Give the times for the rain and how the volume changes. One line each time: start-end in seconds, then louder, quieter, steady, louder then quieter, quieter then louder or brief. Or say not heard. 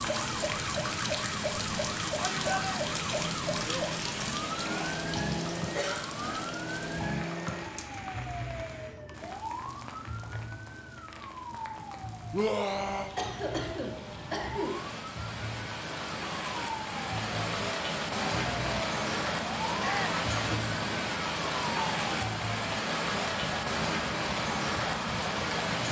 0.0-25.8 quieter then louder.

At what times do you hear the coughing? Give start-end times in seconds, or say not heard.
5.8-6.5, 13.2-14.8, 20.5-20.9.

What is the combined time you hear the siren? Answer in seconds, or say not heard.
26 s.